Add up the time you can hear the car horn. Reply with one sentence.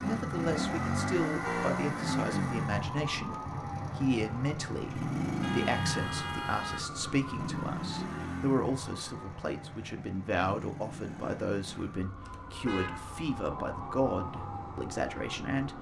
The car horn can be heard for 3 seconds in total.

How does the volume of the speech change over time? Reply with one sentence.
The loudness of the speech stays about the same.